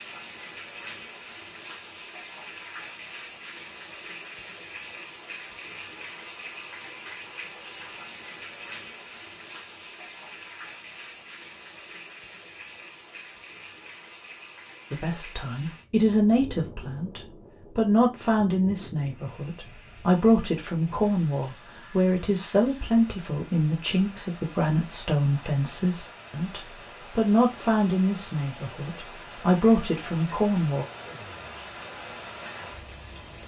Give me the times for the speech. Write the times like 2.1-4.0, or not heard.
14.9-30.9.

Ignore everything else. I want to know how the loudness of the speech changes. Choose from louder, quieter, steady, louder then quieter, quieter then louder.
steady.